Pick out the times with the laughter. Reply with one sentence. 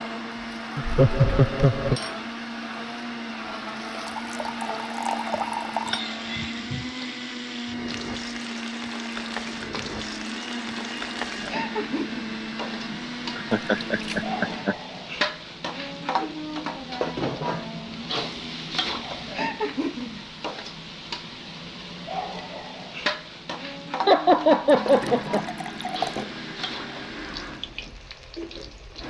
The laughter can be heard from 0.8 to 2.0 s, from 13.3 to 14.8 s and from 24.1 to 25.4 s.